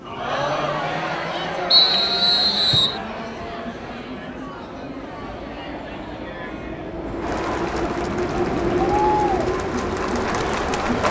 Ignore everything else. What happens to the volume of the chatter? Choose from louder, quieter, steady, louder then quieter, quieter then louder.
quieter then louder.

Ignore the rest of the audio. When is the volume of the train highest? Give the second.
9 s.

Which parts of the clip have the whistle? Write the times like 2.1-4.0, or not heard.
1.7-3.0.